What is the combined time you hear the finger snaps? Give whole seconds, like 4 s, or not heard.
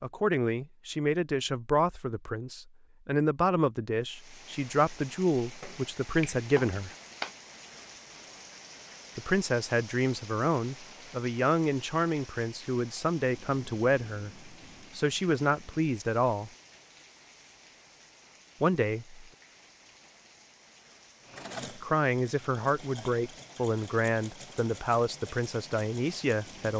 2 s.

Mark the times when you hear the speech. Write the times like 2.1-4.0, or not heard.
0.0-6.9, 9.2-16.5, 18.6-19.2, 21.8-26.7.